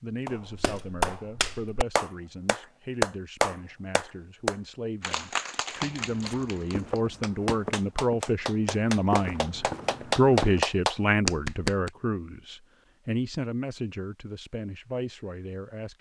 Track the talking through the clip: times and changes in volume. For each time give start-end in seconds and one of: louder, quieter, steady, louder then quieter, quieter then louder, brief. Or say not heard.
0.0-15.9 louder then quieter.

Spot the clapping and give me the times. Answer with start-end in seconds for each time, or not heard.
0.2-11.9.